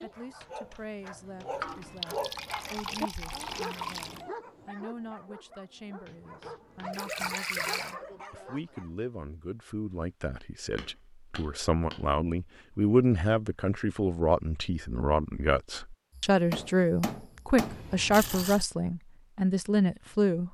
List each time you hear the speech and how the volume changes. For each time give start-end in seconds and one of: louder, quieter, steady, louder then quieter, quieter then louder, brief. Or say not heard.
0.0-20.4 louder.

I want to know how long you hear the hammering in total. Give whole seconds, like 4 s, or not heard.
6 s.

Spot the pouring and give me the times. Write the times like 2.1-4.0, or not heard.
1.6-4.2, 6.9-8.0, 17.6-18.6.